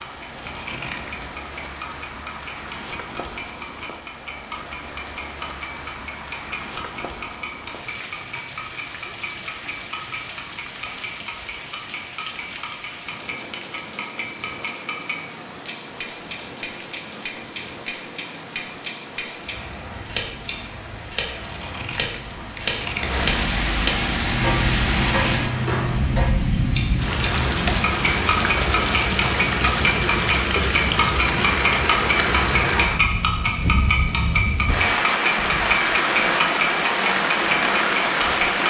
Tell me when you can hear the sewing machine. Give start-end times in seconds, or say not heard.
not heard.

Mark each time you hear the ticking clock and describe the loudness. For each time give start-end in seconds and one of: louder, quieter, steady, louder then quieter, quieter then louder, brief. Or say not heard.
0.0-38.6 louder.